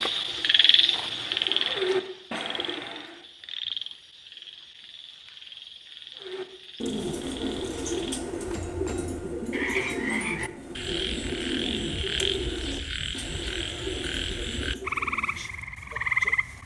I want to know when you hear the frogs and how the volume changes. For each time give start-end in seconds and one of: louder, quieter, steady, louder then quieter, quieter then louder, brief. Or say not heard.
0.0-16.6 quieter then louder.